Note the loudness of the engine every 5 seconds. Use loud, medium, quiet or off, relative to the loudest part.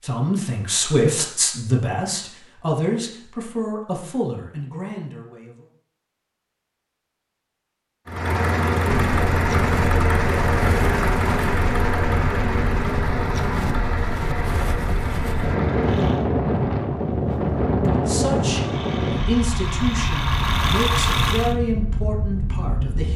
off, loud, loud, medium, loud.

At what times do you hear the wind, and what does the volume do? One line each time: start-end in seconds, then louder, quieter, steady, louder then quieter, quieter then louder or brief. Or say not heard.
8.8-23.1 louder then quieter.